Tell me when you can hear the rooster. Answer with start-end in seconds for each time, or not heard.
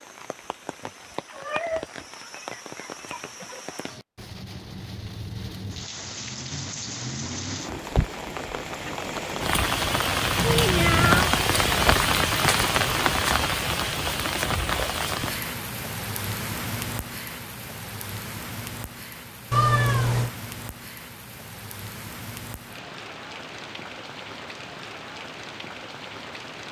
not heard.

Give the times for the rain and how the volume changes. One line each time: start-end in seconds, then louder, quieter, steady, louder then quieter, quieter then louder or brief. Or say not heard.
0.0-26.6 louder then quieter.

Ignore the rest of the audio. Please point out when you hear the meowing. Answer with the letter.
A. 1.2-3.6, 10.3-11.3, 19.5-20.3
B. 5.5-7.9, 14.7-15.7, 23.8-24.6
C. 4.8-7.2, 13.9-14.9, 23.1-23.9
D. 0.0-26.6
A.